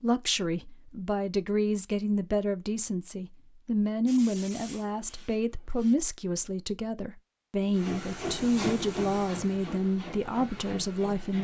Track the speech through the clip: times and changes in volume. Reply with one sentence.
The speech can be heard from 0.0 to 11.4 s, at a steady volume.